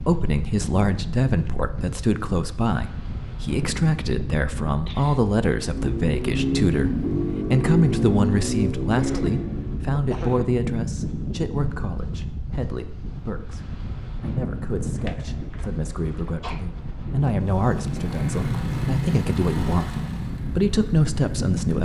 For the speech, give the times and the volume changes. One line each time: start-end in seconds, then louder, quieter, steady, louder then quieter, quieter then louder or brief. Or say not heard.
0.0-21.7 quieter then louder.